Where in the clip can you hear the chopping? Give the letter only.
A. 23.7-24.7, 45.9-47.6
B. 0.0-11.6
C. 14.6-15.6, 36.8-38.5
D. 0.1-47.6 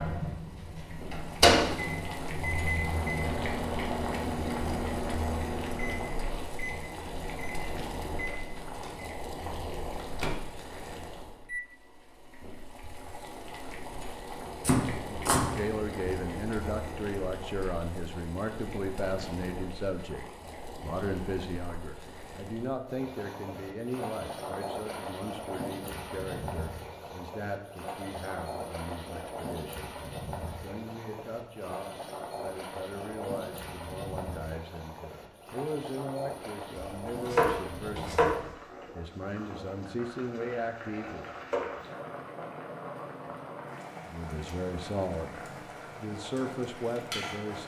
C.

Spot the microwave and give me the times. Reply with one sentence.
The microwave can be heard from 0.0 to 11.6 s.